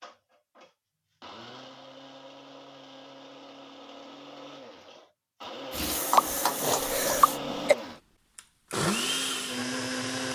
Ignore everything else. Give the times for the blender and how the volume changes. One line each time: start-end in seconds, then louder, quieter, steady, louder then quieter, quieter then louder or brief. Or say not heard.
0.0-10.3 louder.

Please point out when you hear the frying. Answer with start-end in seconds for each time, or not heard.
5.7-7.4.